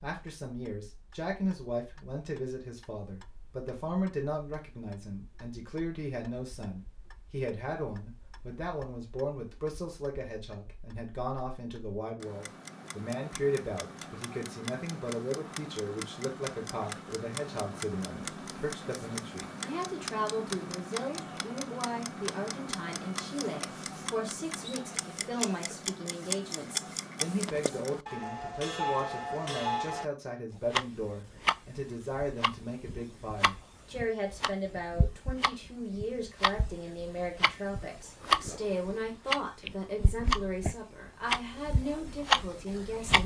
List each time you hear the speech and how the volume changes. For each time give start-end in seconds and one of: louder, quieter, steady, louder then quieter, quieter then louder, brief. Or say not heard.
0.0-43.2 steady.